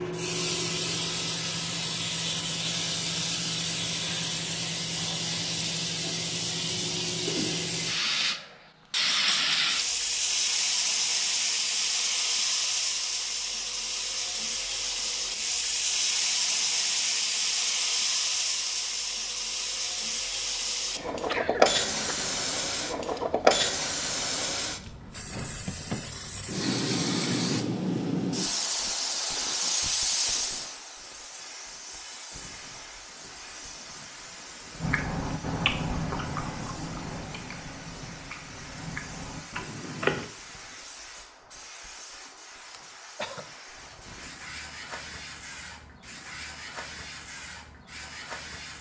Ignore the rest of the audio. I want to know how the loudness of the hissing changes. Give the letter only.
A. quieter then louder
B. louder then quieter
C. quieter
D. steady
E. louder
C.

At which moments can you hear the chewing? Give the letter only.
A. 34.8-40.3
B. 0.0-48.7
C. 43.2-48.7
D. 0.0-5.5
A.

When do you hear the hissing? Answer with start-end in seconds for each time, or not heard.
0.0-48.7.